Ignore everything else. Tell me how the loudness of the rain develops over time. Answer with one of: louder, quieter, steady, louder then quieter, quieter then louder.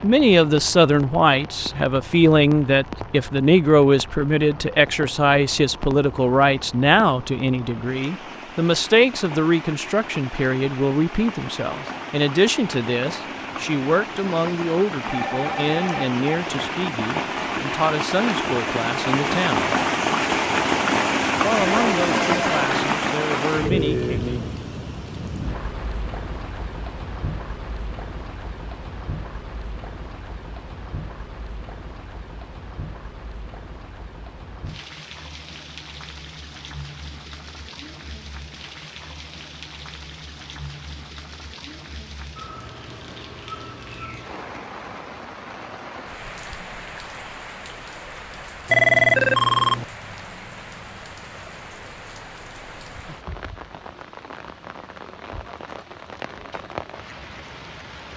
louder then quieter.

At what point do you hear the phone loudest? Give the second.
49 s.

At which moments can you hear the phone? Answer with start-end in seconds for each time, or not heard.
15.1-16.1, 21.7-22.9, 48.7-49.9.